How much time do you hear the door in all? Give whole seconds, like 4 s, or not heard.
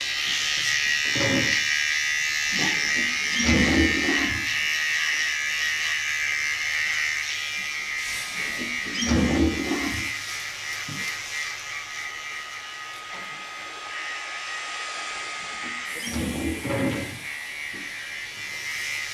2 s.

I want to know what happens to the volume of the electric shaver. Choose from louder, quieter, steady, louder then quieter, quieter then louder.
quieter.